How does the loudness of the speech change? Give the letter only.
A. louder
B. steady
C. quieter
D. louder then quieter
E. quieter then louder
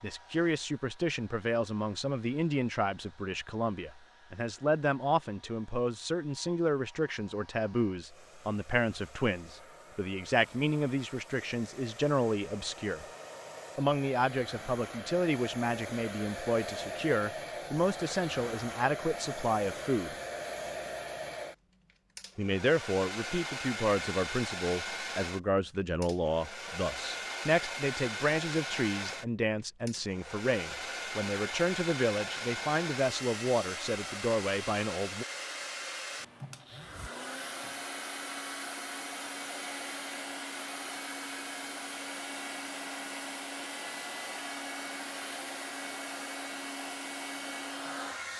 B.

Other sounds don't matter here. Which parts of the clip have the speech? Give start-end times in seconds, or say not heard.
0.0-13.1, 13.8-20.1, 22.4-35.2.